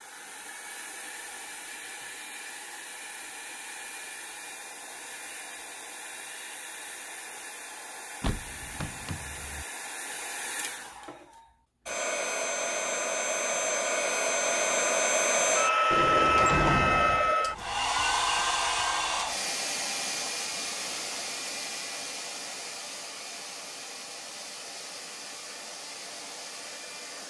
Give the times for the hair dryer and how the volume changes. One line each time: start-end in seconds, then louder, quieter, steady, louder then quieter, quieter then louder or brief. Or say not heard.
0.0-27.2 louder then quieter.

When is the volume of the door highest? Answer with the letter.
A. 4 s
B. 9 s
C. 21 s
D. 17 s
D.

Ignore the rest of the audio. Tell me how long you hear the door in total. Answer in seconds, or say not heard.
3 s.